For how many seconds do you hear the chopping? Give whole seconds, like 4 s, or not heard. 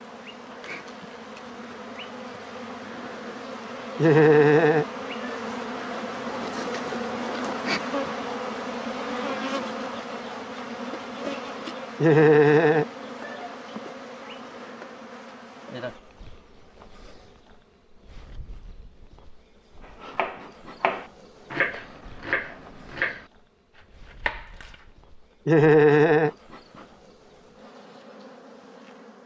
5 s.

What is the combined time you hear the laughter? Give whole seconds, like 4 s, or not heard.
4 s.